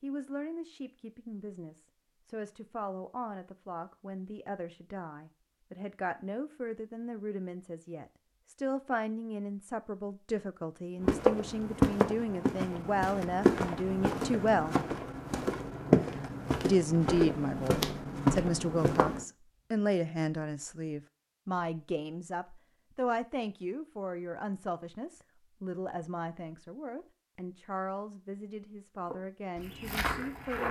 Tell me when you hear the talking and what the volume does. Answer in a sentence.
The talking can be heard from 0.0 to 14.8 s, getting louder; and from 16.6 to 30.6 s, getting quieter.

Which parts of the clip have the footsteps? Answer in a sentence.
The footsteps can be heard from 11.0 to 19.2 s and from 29.1 to 30.6 s.